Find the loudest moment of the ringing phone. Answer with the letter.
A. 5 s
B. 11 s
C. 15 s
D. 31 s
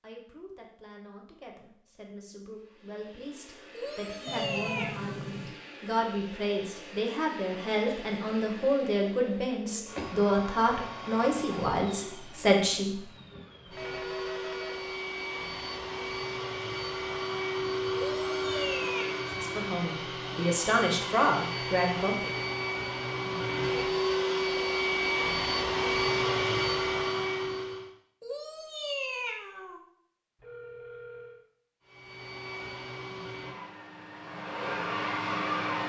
A.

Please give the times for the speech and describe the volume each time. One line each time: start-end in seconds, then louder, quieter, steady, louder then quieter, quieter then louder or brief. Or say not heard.
0.0-13.1 louder
19.4-22.3 brief.